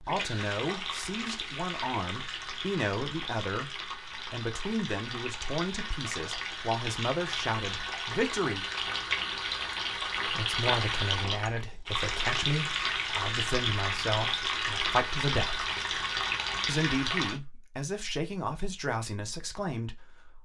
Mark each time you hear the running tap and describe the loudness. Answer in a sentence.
You can hear the running tap from 0.0 to 17.4 s, getting louder.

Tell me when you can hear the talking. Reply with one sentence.
The talking can be heard from 0.0 to 8.7 s, from 10.2 to 15.7 s and from 16.6 to 20.3 s.